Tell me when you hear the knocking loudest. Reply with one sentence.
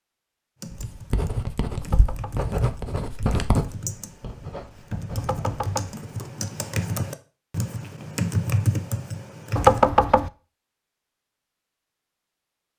The loudest moment of the knocking is at 10 seconds.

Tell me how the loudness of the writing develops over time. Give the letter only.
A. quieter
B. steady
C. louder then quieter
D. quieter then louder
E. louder
A.